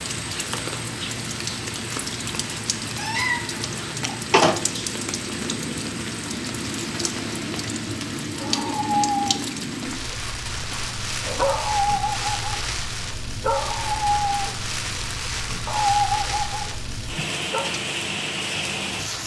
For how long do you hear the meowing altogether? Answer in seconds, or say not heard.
2 s.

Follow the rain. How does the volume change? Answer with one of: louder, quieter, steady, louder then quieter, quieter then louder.
steady.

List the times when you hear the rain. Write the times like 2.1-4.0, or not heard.
0.0-19.2.